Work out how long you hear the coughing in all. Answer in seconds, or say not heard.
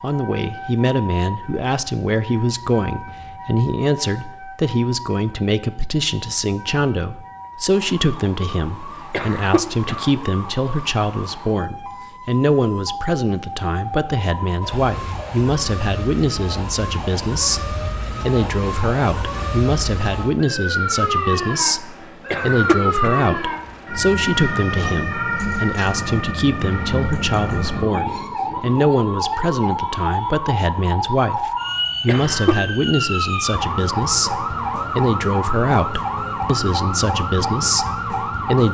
3 s.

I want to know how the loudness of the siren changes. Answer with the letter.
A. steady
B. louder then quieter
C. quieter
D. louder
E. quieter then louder
D.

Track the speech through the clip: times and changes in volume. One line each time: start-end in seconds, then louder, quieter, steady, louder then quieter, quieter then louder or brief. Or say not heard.
0.0-38.6 steady.